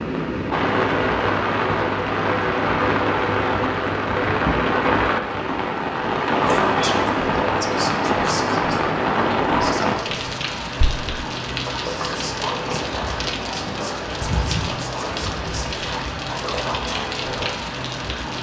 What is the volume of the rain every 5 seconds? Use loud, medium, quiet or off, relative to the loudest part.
loud, loud, medium, medium.